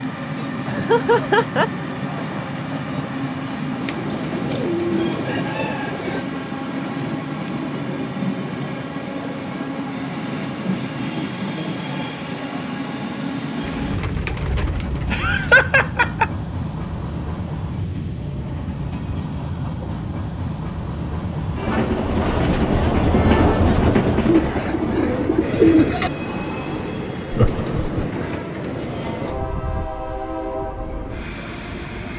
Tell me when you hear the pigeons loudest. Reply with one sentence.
The loudest moment of the pigeons is at 26 seconds.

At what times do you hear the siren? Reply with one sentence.
The siren can't be heard in this clip.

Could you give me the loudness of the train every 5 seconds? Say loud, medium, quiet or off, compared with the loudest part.
medium, medium, medium, medium, loud, medium, medium.